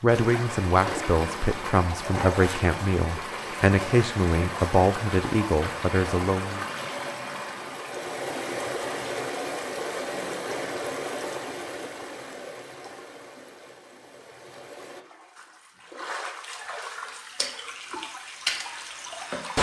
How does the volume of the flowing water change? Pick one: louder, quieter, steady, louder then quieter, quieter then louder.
quieter then louder.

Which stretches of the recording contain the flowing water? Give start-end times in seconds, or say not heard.
0.0-19.5.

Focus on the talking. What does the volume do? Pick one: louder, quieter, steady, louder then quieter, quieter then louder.
steady.